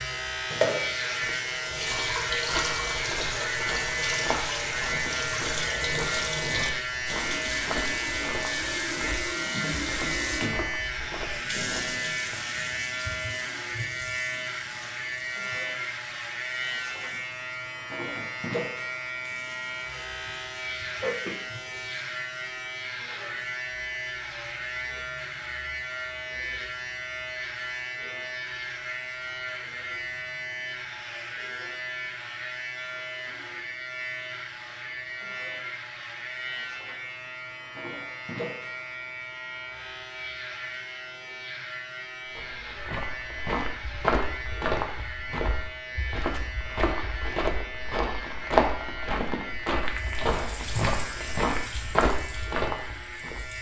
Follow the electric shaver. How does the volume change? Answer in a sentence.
The volume of the electric shaver goes down.